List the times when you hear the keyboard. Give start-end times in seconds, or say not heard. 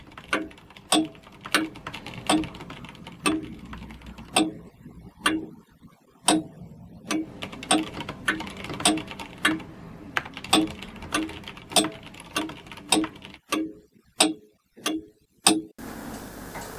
0.0-4.3, 7.2-13.4.